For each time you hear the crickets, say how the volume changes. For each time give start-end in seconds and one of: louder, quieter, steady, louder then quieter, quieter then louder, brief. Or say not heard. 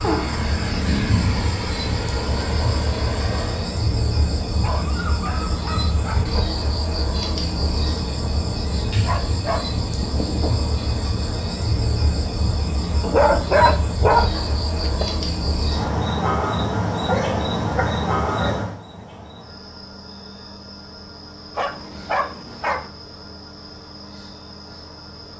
0.0-25.3 quieter.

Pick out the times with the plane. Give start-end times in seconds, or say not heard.
0.0-3.8.